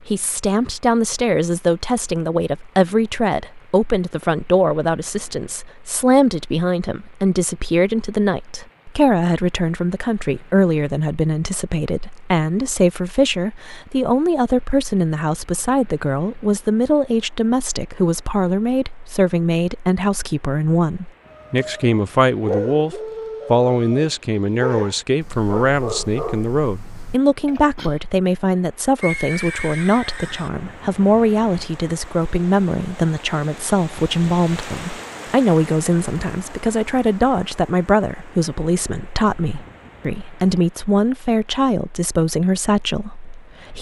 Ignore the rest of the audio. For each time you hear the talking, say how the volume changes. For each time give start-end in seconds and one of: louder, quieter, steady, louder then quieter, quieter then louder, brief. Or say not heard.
0.1-43.7 steady.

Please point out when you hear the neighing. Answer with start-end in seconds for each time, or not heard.
29.0-30.5.